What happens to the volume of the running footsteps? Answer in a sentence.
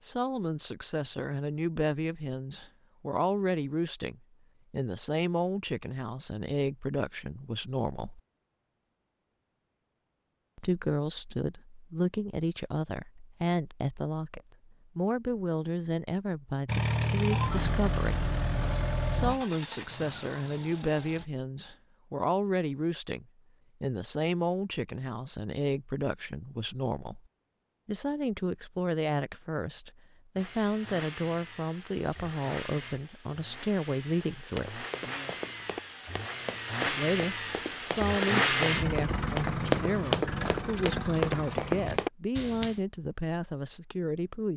The loudness of the running footsteps goes up.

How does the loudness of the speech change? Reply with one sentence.
The loudness of the speech stays about the same.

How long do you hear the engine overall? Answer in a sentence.
The engine can be heard for 16 seconds in total.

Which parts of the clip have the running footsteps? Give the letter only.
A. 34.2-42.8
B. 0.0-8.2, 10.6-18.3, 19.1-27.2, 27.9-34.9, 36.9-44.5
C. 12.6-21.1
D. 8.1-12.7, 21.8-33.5
A.